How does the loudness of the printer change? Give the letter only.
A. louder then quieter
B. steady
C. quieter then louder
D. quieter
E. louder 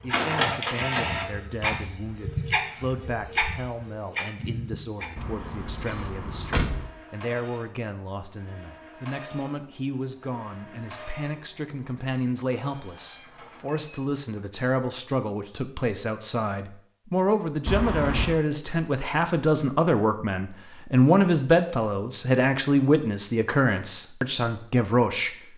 D.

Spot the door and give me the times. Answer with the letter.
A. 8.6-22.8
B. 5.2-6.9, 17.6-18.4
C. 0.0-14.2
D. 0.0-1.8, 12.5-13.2
B.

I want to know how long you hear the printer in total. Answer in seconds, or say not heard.
14 s.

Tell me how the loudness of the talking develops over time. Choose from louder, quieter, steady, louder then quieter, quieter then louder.
louder.